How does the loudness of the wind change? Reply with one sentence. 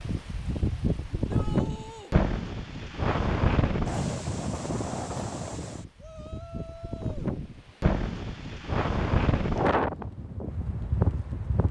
The volume of the wind goes down, then up.